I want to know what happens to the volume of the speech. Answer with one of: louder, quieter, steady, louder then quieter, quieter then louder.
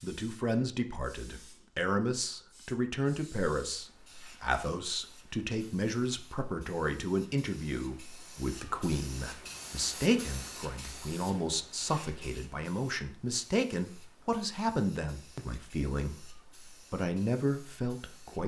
steady.